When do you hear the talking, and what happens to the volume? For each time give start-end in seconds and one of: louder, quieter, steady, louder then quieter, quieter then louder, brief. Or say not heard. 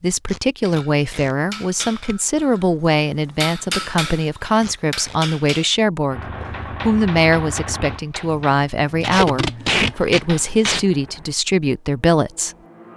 0.0-6.2 steady
6.8-12.6 steady.